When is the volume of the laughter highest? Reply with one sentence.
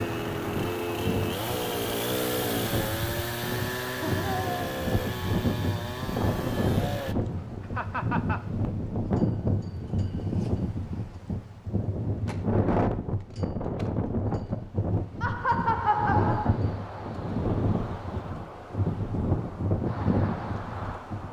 The loudest moment of the laughter is at 16 seconds.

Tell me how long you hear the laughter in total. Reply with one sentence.
The laughter can be heard for 3 seconds in total.